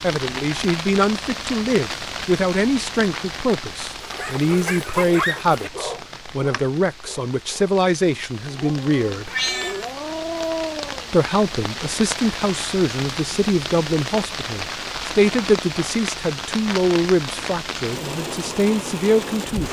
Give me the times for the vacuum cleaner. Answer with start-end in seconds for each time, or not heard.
not heard.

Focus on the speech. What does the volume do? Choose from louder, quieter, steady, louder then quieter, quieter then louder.
steady.